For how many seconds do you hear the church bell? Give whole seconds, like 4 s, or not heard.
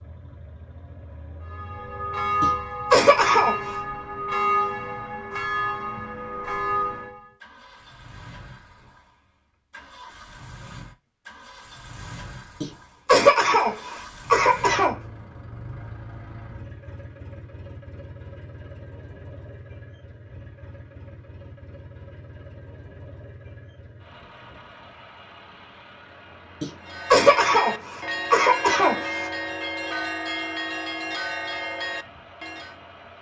12 s.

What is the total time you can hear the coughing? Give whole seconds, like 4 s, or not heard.
6 s.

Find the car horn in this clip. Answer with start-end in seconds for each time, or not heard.
not heard.